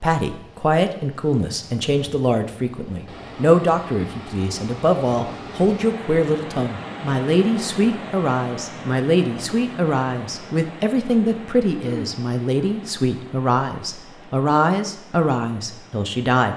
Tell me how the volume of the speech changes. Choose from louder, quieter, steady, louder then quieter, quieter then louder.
steady.